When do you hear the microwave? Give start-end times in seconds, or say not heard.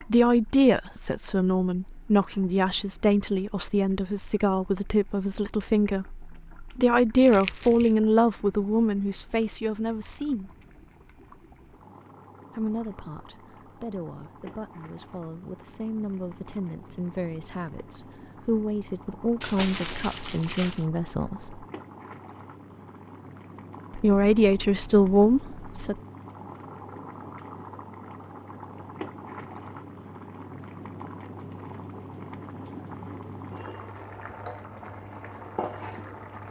not heard.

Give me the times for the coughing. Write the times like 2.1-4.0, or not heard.
not heard.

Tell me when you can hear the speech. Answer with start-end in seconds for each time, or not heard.
0.1-10.5, 12.6-21.6, 23.9-26.0.